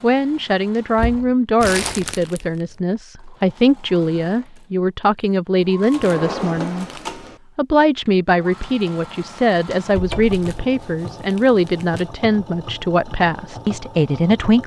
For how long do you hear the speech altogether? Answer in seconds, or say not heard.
14 s.